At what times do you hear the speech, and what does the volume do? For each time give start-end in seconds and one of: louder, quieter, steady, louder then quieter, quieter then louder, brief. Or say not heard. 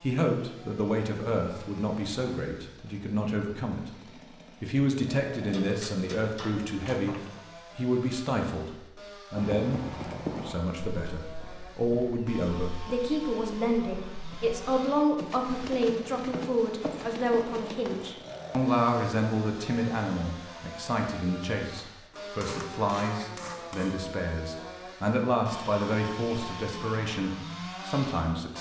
0.0-28.5 steady.